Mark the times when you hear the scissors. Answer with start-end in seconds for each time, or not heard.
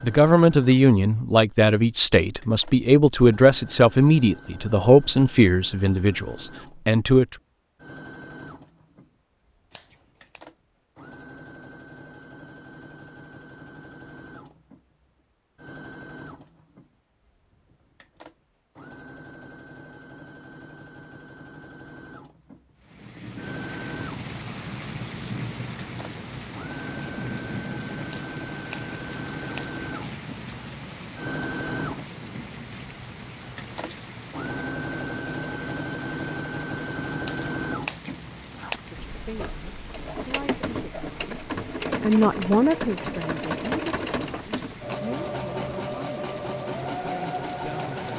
9.7-10.4, 28.1-29.6, 37.2-38.8.